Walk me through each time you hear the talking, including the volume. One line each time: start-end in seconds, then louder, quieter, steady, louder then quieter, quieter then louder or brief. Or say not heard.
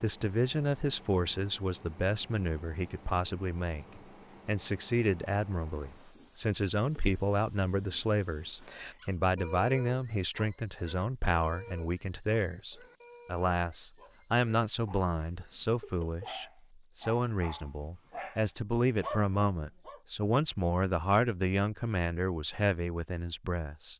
0.0-23.9 steady.